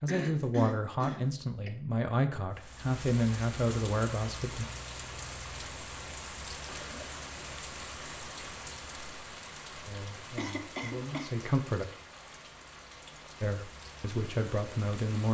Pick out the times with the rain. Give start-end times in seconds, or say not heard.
2.5-15.2.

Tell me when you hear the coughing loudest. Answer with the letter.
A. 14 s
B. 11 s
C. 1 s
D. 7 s
C.